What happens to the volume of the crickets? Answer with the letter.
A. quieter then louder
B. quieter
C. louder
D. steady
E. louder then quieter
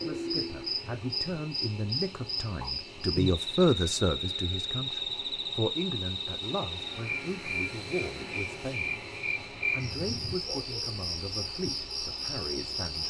D.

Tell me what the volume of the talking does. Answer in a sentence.
The loudness of the talking goes up, then down.